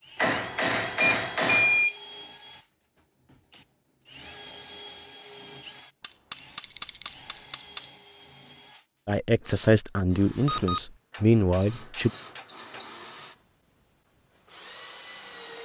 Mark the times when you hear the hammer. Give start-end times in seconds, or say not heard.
0.1-1.9, 6.0-7.9, 11.1-12.9.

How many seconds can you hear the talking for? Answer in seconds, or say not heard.
3 s.